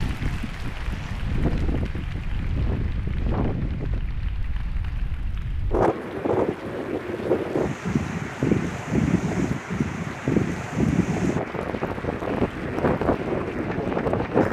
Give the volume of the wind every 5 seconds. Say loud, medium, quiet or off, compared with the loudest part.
medium, loud, loud.